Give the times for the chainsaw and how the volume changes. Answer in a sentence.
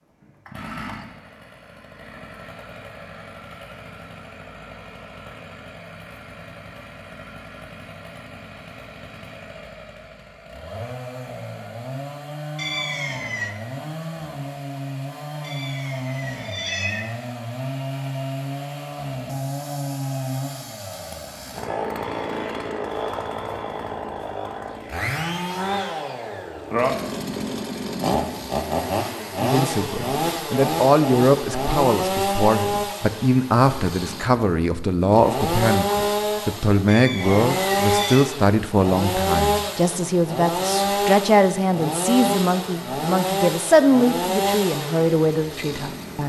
The chainsaw can be heard from 0.2 to 46.2 s, getting louder.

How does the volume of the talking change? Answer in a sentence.
The volume of the talking stays about the same.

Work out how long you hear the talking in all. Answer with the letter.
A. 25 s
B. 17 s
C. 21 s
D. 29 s
B.